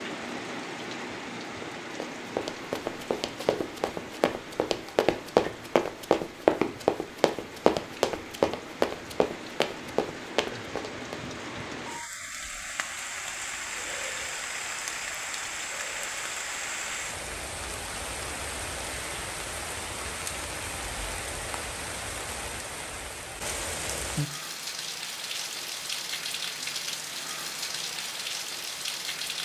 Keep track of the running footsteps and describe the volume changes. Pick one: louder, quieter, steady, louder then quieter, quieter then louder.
louder then quieter.